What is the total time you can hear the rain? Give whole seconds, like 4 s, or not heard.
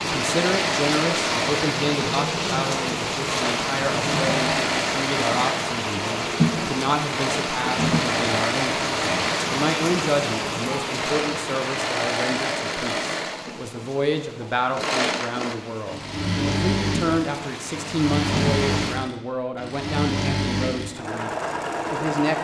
19 s.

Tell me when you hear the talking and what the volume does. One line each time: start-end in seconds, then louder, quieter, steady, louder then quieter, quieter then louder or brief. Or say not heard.
0.0-22.3 steady.